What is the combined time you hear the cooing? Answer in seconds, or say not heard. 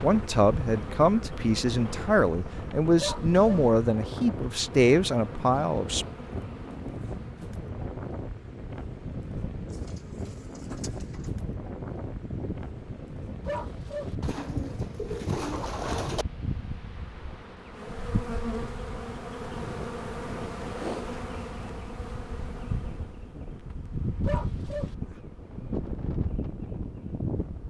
4 s.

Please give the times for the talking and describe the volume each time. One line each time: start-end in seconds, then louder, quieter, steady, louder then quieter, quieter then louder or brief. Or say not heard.
0.0-6.0 steady.